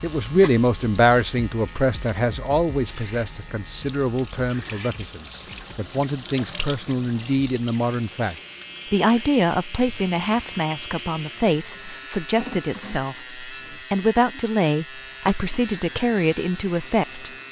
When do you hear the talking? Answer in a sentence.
The talking can be heard from 0.0 to 17.3 s.